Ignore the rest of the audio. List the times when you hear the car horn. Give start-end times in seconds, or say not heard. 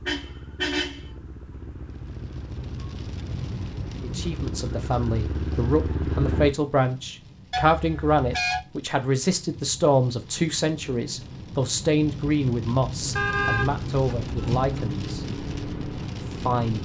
0.1-1.1, 7.5-8.7, 13.2-14.8.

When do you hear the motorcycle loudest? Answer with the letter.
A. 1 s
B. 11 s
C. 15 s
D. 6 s
D.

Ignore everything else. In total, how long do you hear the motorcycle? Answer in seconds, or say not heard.
10 s.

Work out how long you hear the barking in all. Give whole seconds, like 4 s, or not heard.
not heard.